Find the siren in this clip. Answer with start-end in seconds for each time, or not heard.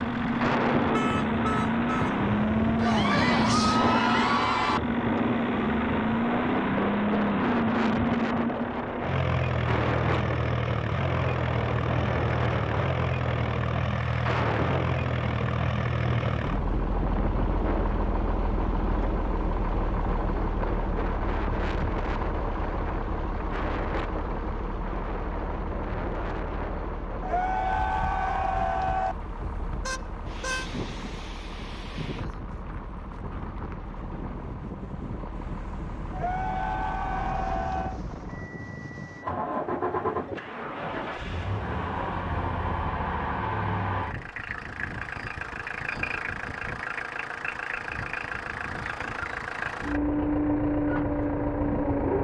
not heard.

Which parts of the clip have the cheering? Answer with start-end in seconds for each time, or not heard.
2.8-4.8, 27.2-29.1, 36.1-38.0.